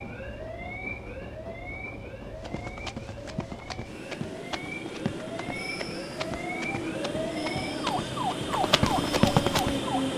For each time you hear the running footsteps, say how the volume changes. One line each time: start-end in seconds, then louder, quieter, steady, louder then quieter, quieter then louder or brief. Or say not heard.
2.4-9.8 louder.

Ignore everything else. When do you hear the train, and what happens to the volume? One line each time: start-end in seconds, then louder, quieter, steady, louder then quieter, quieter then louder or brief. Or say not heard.
0.0-10.1 louder.